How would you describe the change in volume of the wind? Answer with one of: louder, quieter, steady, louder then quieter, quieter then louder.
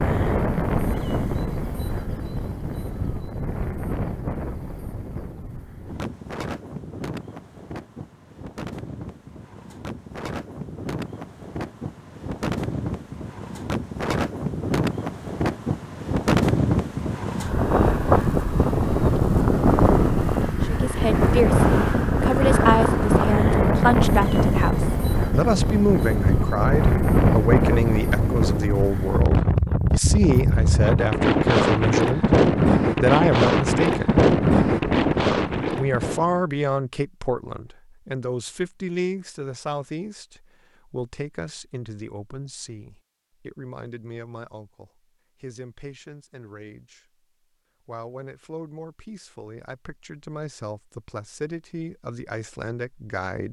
louder.